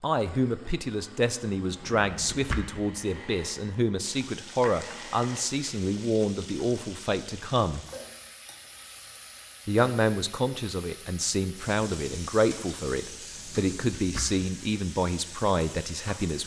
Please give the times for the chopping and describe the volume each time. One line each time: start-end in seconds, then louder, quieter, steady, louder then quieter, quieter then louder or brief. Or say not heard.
not heard.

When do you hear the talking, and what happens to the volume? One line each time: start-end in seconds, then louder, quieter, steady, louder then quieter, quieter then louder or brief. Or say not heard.
0.0-7.8 steady
9.7-16.4 steady.